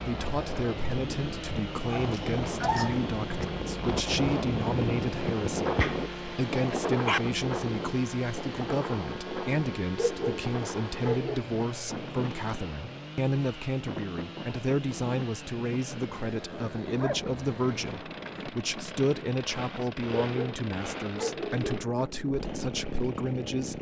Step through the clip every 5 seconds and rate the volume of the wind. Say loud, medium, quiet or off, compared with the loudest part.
loud, loud, medium, medium, medium.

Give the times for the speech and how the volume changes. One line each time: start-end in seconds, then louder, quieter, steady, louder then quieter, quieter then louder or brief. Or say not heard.
0.0-23.7 steady.